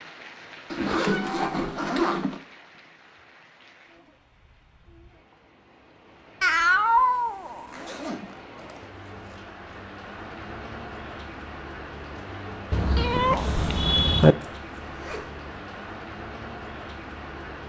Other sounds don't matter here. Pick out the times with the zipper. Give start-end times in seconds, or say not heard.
0.7-2.4, 7.5-9.4, 14.4-15.3.